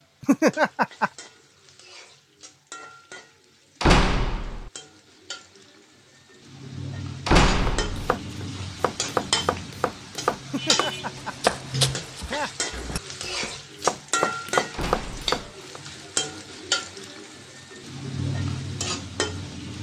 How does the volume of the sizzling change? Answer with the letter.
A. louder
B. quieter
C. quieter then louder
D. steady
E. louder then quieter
A.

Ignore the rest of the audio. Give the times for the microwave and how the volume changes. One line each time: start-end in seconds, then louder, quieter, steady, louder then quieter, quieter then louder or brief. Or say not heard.
not heard.